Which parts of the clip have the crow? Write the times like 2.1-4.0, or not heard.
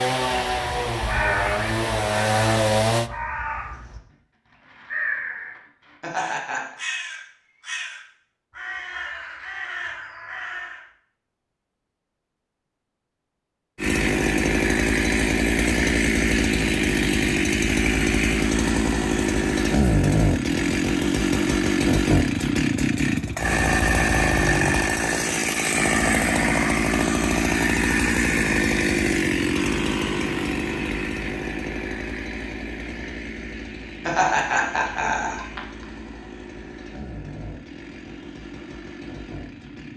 0.5-10.8.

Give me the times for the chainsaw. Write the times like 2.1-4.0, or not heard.
0.0-3.1, 13.8-39.9.